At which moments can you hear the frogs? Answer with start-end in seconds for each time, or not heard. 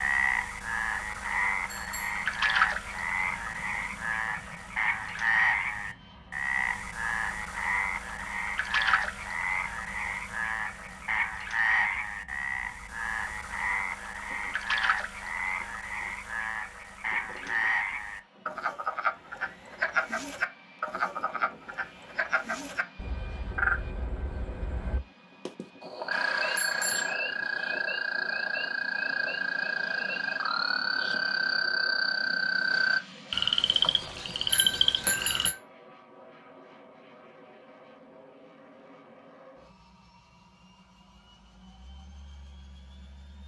0.0-35.5.